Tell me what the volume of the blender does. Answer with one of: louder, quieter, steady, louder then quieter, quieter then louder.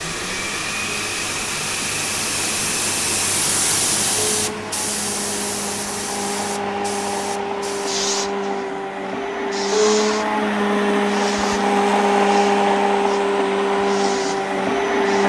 louder.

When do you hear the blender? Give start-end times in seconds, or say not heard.
0.0-15.2.